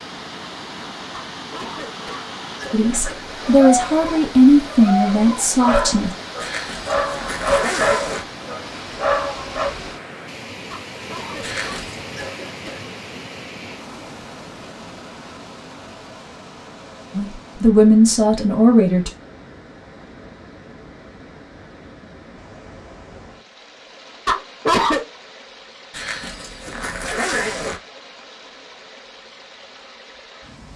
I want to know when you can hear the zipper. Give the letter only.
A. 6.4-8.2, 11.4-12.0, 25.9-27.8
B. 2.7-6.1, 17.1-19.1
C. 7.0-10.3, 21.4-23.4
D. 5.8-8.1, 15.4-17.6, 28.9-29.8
A.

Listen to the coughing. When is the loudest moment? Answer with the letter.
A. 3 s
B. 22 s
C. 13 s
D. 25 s
D.